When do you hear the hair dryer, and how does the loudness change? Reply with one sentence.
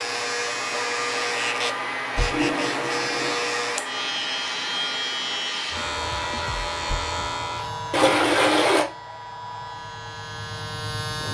You can hear the hair dryer from 0.0 to 11.3 s, getting quieter.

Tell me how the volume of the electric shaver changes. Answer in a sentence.
The volume of the electric shaver goes down.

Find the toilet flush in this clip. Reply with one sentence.
The toilet flush can be heard from 2.3 to 3.5 s and from 7.9 to 8.8 s.